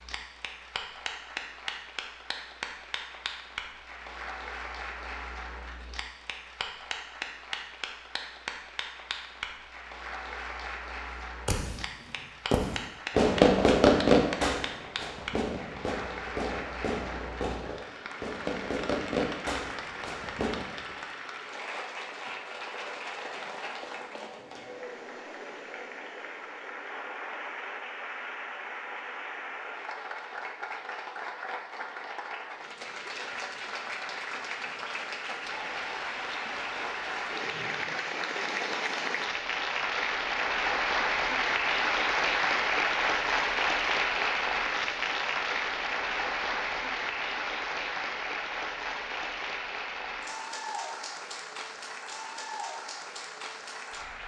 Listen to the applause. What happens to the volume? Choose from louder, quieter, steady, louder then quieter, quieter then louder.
louder.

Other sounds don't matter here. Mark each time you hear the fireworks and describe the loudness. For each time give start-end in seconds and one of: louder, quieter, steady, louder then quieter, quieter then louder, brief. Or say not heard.
11.4-20.9 quieter.